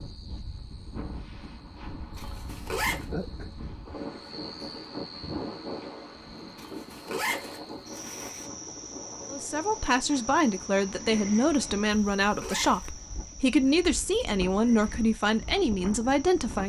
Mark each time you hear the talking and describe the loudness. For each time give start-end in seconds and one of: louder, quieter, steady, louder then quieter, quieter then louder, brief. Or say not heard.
9.3-16.6 steady.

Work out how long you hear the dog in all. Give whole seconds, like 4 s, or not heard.
not heard.